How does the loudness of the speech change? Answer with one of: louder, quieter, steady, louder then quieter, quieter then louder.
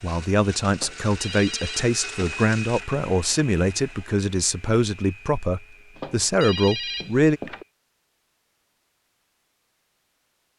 steady.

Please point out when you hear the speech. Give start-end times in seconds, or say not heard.
0.0-7.4.